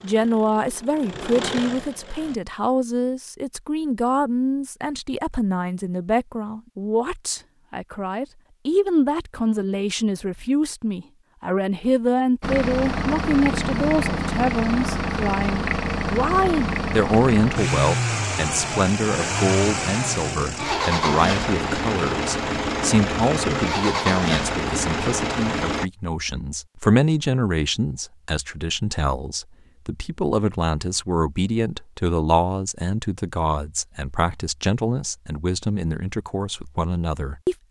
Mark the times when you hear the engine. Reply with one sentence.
The engine can be heard from 0.0 to 2.4 s and from 12.4 to 25.9 s.